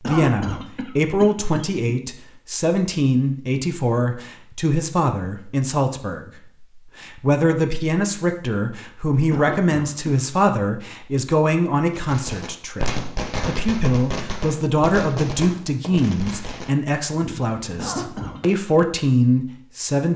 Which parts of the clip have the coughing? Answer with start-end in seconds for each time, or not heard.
0.0-1.9, 9.3-10.2, 17.8-18.4.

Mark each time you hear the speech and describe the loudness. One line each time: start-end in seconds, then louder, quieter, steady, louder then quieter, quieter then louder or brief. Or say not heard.
0.0-20.1 steady.